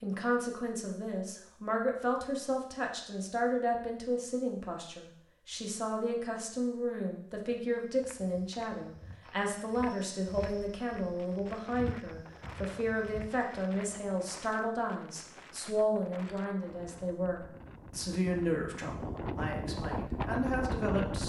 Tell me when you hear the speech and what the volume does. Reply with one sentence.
You can hear the speech from 0.0 to 21.2 s, at a steady volume.